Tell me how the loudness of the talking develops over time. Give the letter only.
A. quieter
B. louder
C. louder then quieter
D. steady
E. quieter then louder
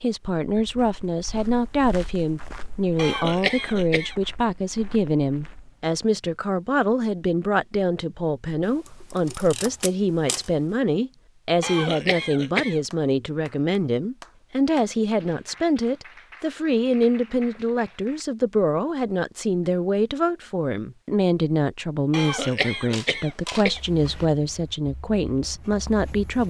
D.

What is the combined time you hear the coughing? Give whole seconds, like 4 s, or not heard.
4 s.